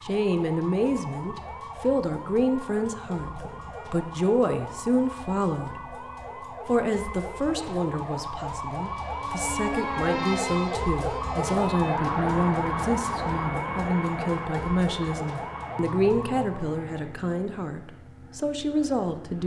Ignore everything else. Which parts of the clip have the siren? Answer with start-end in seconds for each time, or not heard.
0.0-16.8.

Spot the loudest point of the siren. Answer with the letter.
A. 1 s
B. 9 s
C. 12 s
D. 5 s
C.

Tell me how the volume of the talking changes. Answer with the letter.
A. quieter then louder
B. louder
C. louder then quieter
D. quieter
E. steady
E.